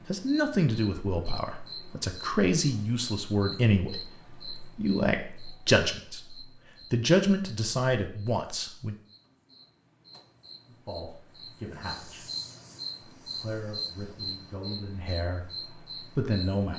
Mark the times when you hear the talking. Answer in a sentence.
You can hear the talking from 0.1 to 8.9 s, from 10.7 to 12.2 s and from 13.2 to 16.7 s.